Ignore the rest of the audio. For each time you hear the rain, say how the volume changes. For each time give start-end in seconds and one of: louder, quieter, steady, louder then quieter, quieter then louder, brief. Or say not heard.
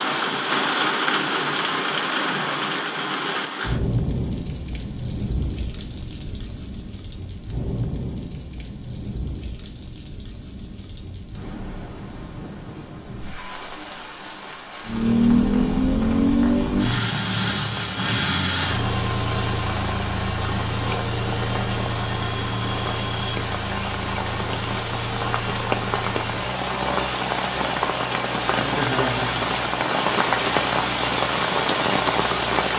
0.0-32.7 quieter then louder.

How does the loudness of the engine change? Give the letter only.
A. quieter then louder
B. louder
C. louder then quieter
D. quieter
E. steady
D.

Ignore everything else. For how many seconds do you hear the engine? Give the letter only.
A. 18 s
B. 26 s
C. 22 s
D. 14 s
A.